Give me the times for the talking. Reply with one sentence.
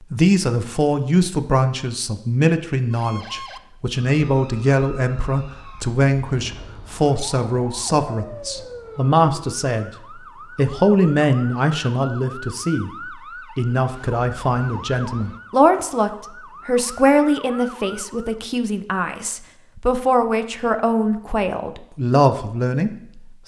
You can hear the talking from 0.1 to 9.9 s, from 10.6 to 12.9 s and from 13.6 to 23.4 s.